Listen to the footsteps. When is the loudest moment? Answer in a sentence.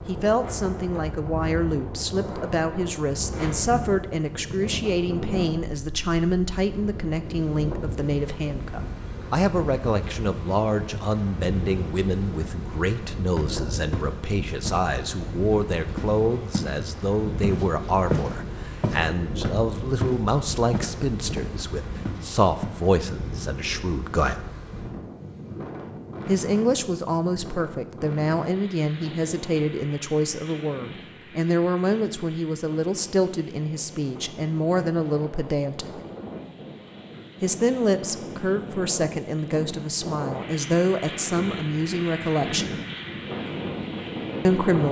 The loudest moment of the footsteps is at 18 seconds.